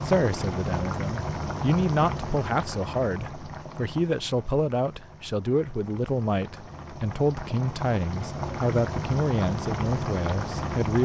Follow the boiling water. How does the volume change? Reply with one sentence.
The volume of the boiling water goes down, then up.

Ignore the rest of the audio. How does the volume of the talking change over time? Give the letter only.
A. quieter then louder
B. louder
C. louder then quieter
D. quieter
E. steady
E.